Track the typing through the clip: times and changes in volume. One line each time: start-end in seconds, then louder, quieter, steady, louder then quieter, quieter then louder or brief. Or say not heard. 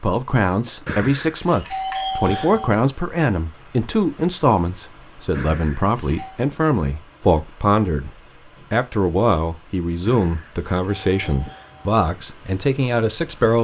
not heard.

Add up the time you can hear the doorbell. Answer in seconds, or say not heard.
5 s.